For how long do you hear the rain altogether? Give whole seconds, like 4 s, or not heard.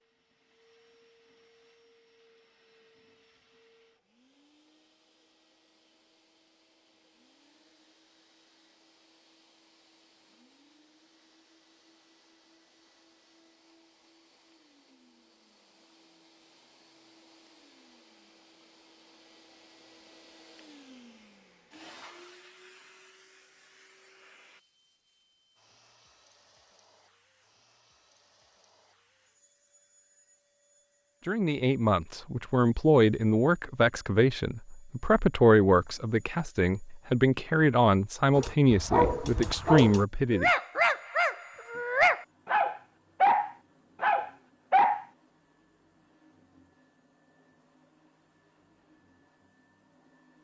not heard.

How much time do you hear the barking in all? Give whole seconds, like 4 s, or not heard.
7 s.